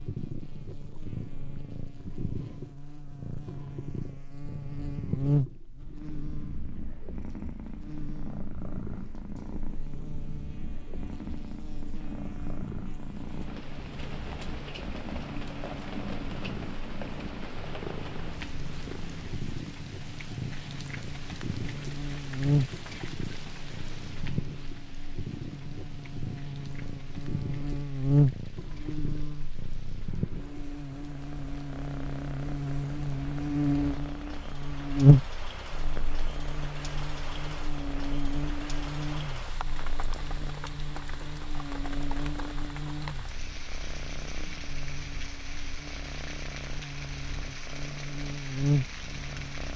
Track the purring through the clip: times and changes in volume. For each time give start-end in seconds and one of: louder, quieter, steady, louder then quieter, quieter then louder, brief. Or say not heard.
0.0-49.7 quieter.